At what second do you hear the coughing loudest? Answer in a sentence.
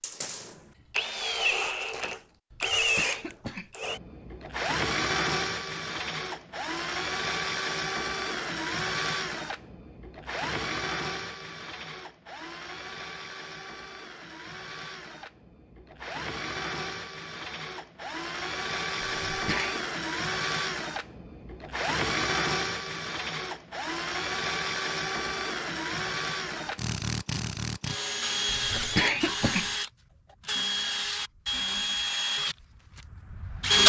The loudest moment of the coughing is at 29 seconds.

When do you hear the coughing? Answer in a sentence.
You can hear the coughing from 2.5 to 3.8 s, from 19.2 to 19.8 s and from 28.7 to 29.8 s.